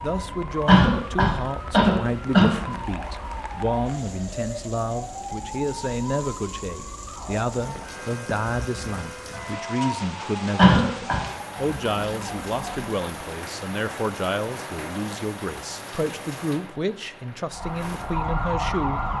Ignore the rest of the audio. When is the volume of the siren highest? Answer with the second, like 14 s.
19 s.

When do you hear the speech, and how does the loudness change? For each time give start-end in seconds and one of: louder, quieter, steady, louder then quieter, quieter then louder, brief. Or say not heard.
0.0-19.0 steady.